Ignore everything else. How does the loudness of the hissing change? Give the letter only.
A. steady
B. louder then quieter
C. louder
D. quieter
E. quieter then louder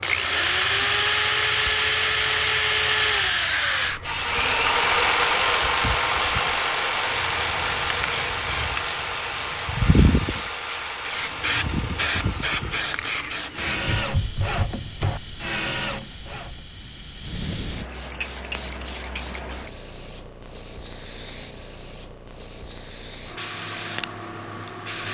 B.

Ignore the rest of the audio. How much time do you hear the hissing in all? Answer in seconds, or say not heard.
25 s.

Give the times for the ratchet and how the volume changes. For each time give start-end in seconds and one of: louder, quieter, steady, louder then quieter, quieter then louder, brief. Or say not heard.
not heard.